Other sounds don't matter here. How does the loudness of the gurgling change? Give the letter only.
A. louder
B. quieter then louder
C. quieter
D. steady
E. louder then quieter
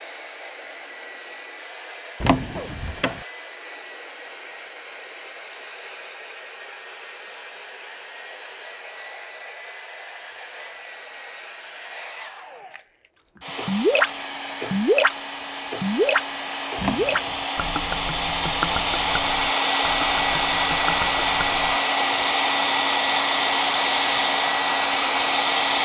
C.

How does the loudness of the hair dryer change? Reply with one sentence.
The volume of the hair dryer goes up.